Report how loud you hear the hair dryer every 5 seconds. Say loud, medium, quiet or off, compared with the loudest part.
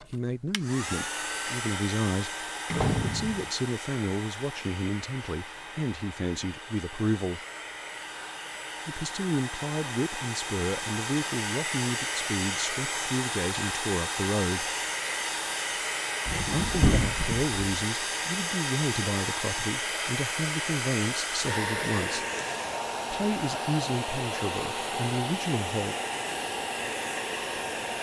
medium, medium, loud, loud, loud, loud.